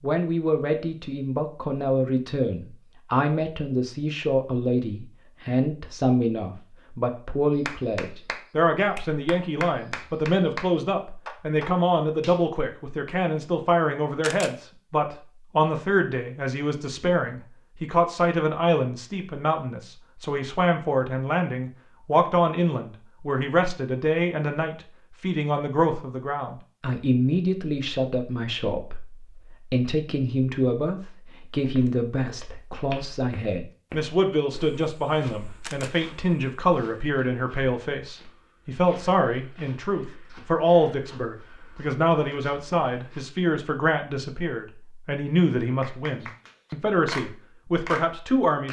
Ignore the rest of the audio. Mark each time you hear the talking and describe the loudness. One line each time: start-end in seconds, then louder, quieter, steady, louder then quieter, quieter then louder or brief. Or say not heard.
0.0-48.6 steady.